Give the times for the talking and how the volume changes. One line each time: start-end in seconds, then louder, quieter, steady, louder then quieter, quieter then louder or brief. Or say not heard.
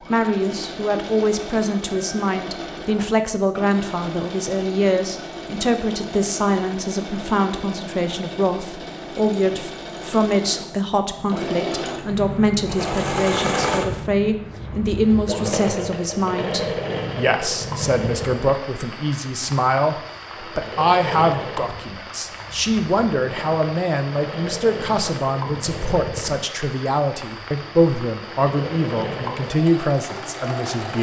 0.1-30.9 steady.